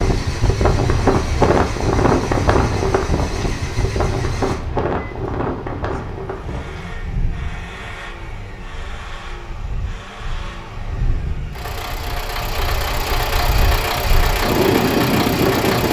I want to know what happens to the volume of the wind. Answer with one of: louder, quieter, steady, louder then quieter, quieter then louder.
quieter then louder.